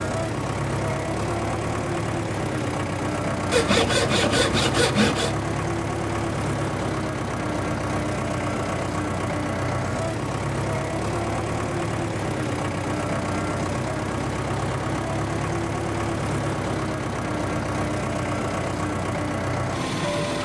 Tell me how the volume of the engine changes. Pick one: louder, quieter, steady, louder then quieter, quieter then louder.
steady.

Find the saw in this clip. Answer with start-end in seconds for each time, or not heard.
3.5-5.3.